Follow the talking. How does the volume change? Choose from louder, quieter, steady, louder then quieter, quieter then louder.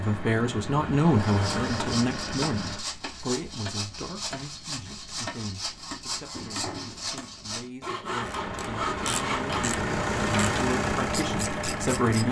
quieter then louder.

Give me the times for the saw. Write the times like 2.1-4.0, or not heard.
1.1-9.7.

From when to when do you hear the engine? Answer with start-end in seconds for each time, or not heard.
0.0-2.9, 8.2-12.2.